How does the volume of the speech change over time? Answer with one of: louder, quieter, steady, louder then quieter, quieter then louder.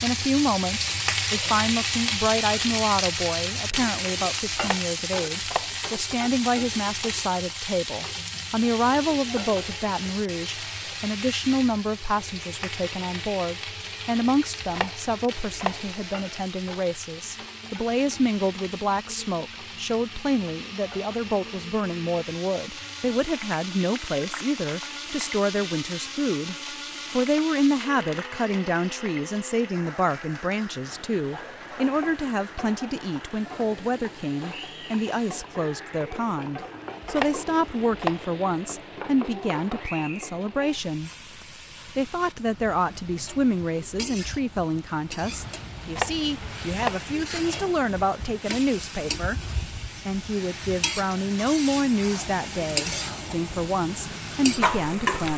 steady.